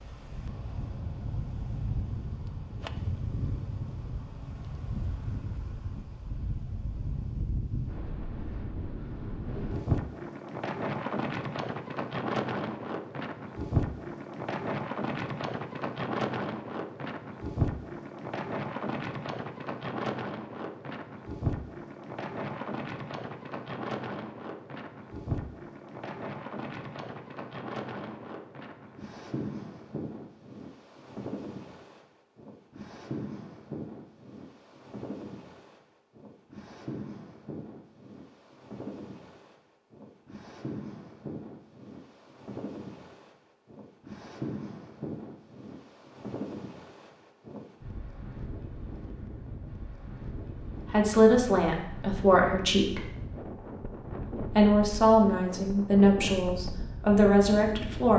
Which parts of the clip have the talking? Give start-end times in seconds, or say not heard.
50.9-53.0, 54.5-58.1.